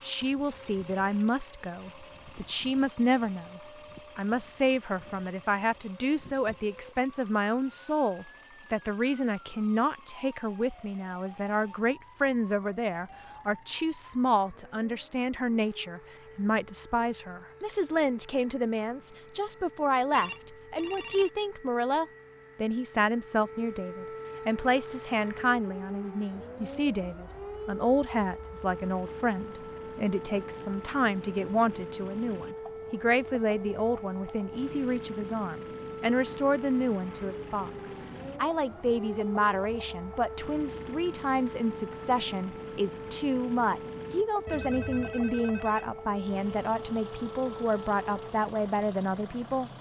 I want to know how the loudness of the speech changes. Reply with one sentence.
The loudness of the speech stays about the same.